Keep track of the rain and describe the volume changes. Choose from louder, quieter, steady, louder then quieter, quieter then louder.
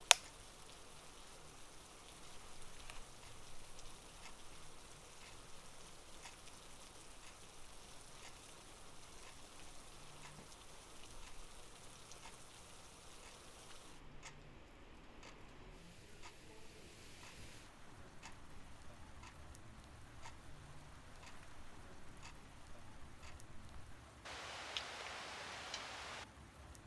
steady.